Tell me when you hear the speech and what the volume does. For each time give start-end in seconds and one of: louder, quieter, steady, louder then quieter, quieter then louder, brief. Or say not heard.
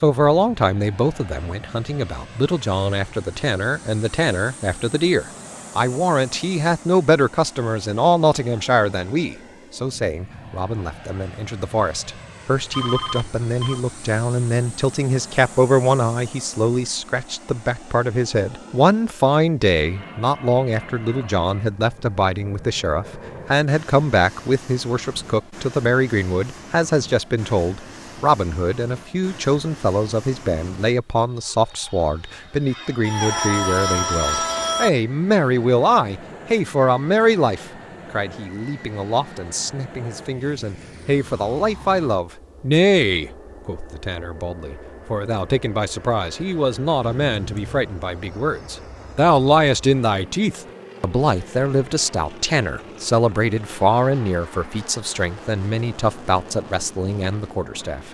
0.0-58.0 steady.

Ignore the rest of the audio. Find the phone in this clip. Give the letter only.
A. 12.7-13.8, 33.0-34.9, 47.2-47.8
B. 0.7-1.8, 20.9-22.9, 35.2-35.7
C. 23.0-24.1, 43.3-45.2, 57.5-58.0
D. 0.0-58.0
A.